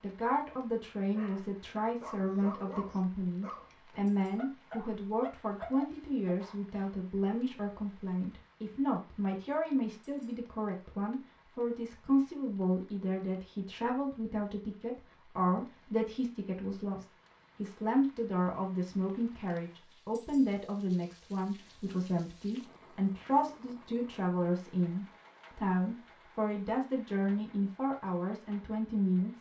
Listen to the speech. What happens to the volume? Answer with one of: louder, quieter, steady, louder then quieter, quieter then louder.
steady.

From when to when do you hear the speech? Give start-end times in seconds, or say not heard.
0.0-29.3.